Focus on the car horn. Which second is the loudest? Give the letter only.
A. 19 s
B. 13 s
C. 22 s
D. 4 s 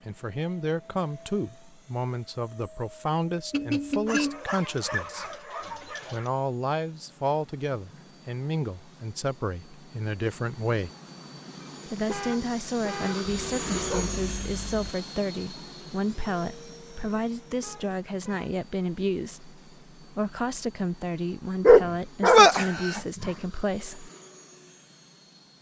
D.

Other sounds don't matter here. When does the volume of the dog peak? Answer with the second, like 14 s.
22 s.